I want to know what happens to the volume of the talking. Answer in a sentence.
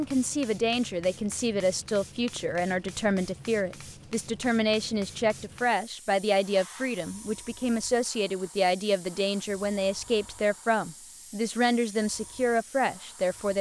The loudness of the talking stays about the same.